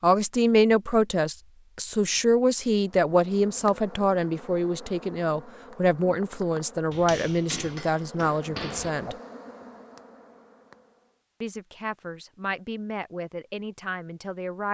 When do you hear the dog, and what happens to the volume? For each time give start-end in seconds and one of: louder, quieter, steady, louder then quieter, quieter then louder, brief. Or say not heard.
not heard.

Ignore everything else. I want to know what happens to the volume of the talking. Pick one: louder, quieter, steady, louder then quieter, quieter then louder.
quieter.